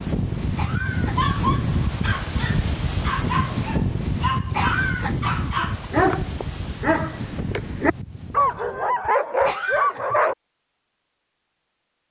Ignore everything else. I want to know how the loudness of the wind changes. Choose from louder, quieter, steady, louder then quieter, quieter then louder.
quieter.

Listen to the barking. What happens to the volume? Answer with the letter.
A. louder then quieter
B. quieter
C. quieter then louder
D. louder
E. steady
D.